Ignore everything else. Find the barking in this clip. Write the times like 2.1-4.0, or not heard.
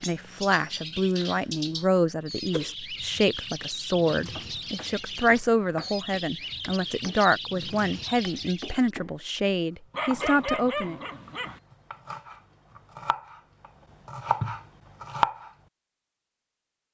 9.9-11.6.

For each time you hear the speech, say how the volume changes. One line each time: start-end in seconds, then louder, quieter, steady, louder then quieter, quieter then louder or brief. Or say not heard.
0.0-11.0 steady.